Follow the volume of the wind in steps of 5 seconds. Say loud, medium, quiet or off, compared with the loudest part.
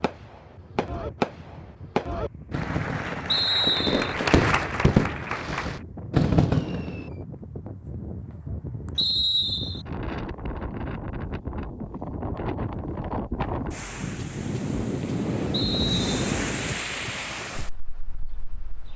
quiet, medium, loud, loud.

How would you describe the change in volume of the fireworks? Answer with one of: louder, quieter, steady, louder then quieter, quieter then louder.
louder.